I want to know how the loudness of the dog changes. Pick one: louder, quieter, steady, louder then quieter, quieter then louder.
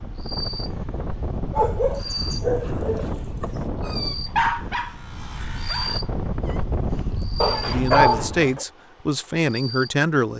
quieter then louder.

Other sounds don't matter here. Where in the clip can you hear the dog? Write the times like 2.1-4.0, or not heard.
1.5-8.7.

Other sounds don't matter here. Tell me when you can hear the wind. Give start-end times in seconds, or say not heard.
0.0-8.6.